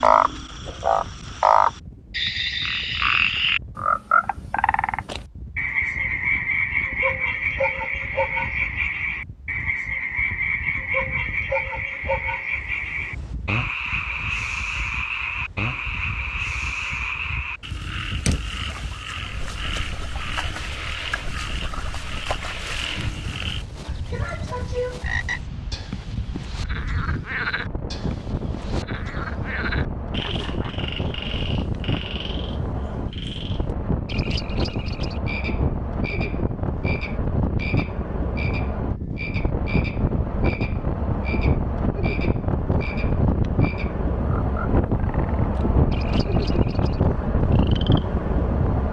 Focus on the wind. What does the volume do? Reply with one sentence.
The loudness of the wind goes up.